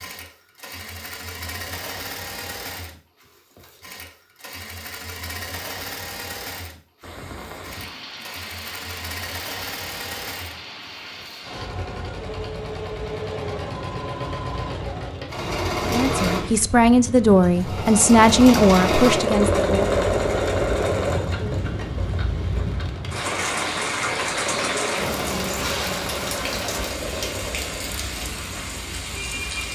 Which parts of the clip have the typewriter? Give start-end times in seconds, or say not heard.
not heard.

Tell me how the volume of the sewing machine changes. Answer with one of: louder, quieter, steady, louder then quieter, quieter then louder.
louder then quieter.